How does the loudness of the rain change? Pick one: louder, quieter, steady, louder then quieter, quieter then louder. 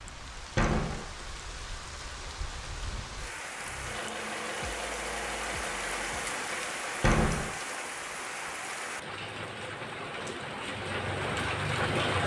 louder.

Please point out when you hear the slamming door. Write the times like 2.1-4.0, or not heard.
0.6-1.1, 7.0-7.5.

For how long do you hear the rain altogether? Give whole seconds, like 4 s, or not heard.
12 s.